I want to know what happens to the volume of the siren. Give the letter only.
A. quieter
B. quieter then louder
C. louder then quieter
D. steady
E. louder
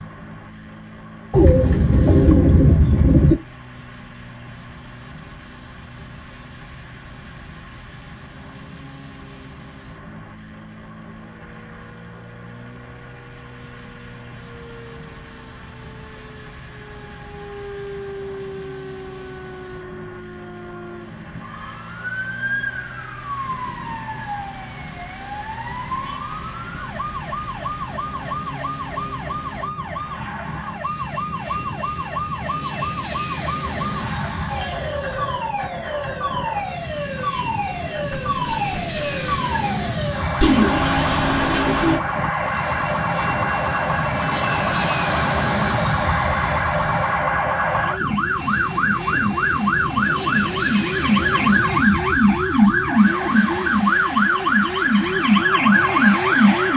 E.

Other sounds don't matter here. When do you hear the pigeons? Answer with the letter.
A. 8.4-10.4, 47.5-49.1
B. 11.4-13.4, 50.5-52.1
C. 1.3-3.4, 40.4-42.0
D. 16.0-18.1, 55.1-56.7
C.